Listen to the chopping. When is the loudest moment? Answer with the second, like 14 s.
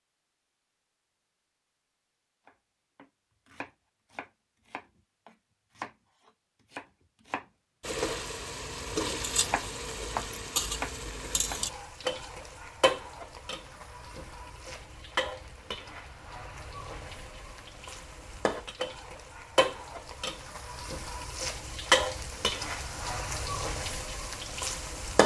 10 s.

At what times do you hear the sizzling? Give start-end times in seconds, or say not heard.
7.8-25.2.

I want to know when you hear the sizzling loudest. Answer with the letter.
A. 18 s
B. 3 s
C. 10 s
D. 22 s
D.